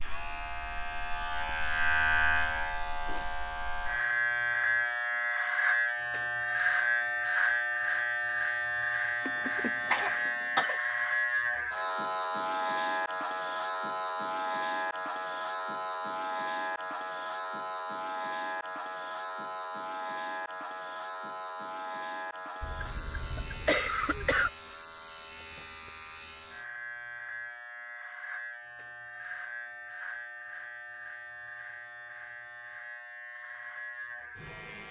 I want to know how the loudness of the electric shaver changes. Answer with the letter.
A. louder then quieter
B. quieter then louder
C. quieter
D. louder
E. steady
C.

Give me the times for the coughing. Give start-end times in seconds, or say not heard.
9.2-10.8, 22.6-24.5.